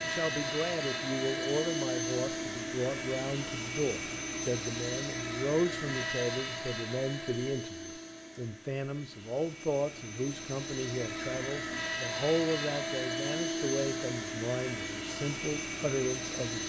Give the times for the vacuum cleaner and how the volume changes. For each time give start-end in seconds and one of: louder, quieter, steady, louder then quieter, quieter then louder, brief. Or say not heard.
0.0-16.6 quieter then louder.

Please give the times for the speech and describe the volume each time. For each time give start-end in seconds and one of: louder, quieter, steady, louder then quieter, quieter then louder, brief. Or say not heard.
0.0-16.6 steady.